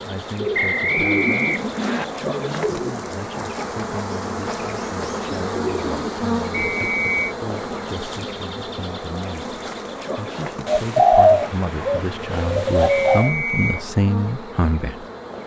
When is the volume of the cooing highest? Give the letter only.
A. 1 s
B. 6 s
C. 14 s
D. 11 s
D.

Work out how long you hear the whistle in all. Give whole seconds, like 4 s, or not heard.
3 s.